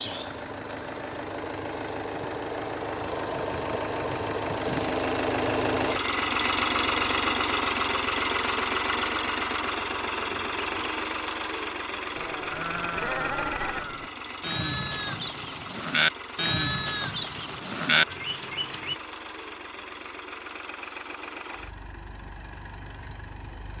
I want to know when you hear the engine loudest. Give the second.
7 s.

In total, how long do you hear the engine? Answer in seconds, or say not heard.
24 s.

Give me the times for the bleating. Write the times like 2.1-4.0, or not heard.
12.2-18.9.